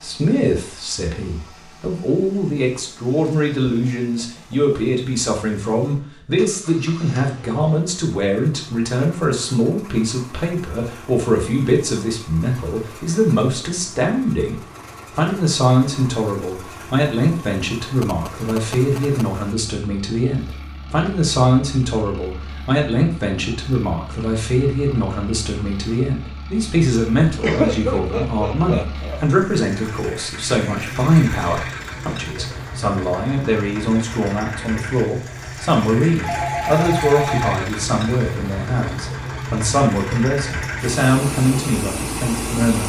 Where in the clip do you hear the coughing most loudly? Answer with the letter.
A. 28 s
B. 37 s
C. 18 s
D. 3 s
A.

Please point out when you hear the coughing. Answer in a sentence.
The coughing can be heard from 27.4 to 29.2 s.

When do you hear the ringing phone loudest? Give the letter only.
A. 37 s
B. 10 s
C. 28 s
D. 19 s
A.